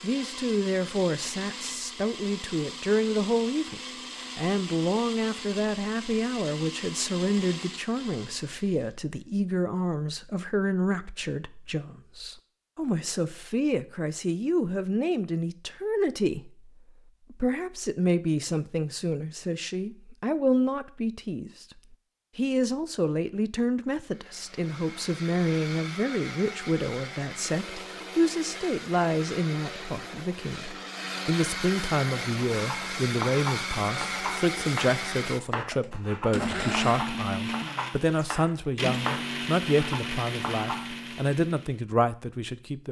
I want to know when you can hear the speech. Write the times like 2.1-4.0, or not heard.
0.0-16.7, 17.3-21.6, 22.4-42.8.